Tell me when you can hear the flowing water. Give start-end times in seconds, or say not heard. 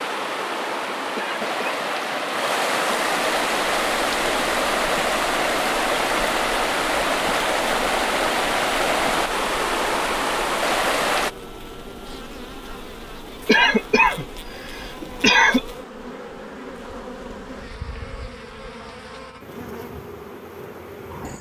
0.0-11.3.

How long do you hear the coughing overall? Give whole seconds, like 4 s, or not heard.
3 s.